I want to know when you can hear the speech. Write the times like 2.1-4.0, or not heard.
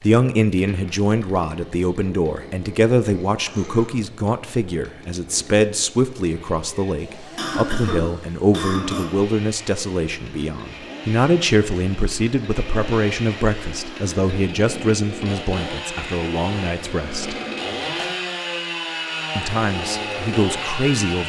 0.0-17.4, 19.4-21.2.